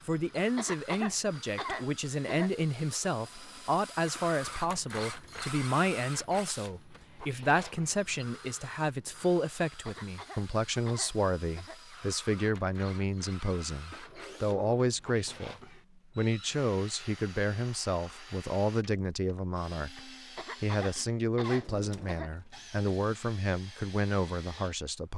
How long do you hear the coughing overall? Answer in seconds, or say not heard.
6 s.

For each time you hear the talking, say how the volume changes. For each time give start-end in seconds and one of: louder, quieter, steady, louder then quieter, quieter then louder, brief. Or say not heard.
0.1-15.6 steady
16.1-25.1 steady.